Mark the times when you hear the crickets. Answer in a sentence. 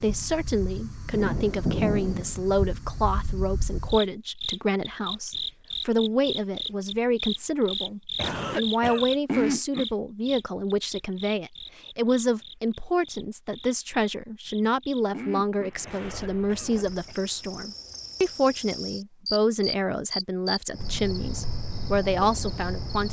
The crickets can be heard from 0.0 to 23.0 s.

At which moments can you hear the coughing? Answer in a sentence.
The coughing can be heard from 8.2 to 9.2 s and from 15.8 to 17.2 s.